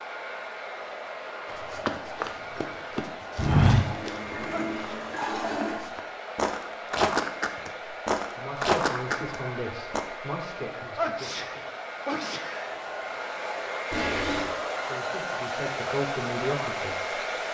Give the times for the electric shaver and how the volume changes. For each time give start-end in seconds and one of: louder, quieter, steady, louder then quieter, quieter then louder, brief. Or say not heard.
not heard.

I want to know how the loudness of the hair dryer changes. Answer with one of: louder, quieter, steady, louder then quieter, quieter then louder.
louder.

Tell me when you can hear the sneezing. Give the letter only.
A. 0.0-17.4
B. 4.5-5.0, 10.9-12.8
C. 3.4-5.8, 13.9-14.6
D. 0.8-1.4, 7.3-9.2
B.